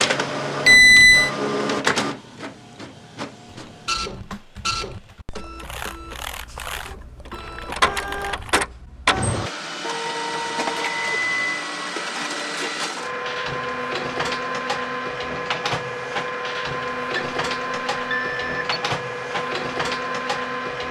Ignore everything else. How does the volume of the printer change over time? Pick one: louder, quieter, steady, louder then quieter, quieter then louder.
steady.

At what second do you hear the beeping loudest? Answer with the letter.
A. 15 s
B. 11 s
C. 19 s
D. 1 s
D.